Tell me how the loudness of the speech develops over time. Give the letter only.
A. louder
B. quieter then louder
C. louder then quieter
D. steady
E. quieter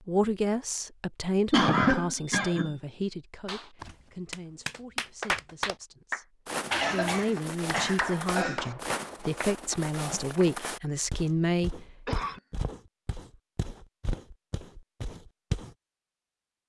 B.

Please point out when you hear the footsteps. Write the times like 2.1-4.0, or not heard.
6.5-15.8.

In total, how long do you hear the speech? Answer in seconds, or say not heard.
11 s.